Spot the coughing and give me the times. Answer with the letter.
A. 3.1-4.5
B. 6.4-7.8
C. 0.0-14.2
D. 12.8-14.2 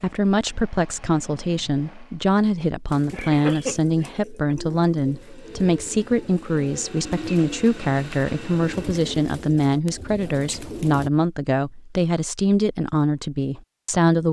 A.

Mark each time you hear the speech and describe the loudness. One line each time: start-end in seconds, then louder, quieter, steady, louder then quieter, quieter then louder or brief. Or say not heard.
0.0-14.2 steady.